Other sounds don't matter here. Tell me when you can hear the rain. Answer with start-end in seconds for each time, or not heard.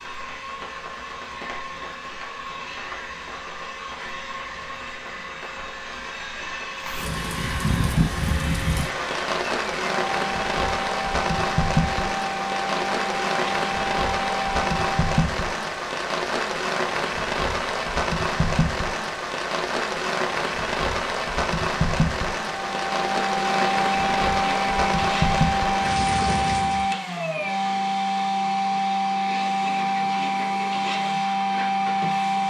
0.0-26.9.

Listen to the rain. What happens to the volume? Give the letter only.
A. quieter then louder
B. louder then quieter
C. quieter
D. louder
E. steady
D.